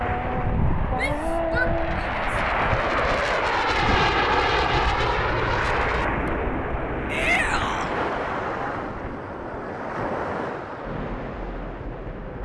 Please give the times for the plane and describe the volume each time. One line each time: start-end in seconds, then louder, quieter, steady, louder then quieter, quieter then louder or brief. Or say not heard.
0.0-12.4 louder then quieter.